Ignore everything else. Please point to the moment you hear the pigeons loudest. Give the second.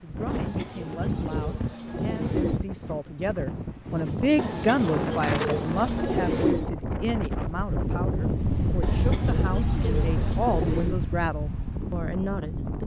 6 s.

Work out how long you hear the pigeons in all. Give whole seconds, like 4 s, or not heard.
7 s.